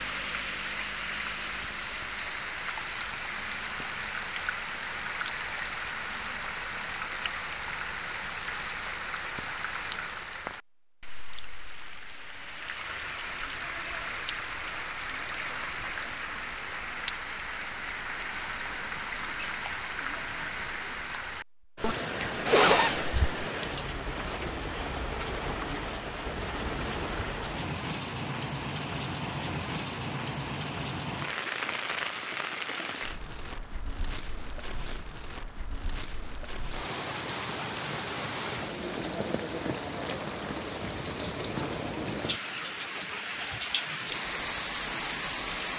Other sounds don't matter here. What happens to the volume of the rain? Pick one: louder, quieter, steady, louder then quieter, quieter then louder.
steady.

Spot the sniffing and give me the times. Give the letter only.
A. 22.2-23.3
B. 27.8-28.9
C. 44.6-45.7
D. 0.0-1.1
A.